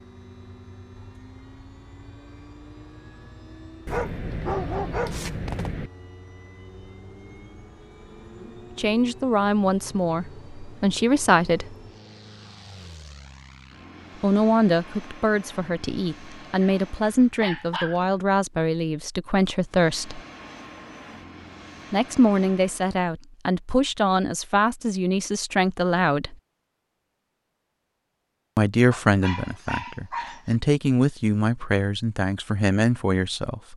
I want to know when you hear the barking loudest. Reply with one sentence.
The loudest moment of the barking is at 5 seconds.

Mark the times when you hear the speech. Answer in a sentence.
The speech can be heard from 8.4 to 11.8 s, from 14.2 to 20.2 s, from 21.9 to 26.4 s and from 28.6 to 33.7 s.